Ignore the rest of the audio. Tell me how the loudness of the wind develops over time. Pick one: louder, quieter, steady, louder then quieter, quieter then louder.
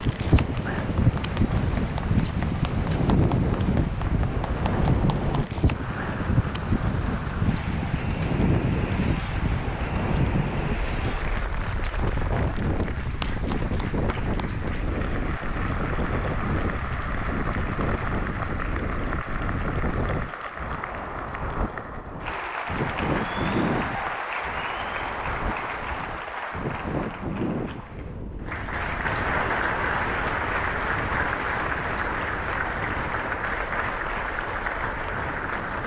quieter.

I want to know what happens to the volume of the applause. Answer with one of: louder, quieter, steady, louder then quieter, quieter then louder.
louder.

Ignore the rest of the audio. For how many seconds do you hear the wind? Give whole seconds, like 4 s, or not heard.
36 s.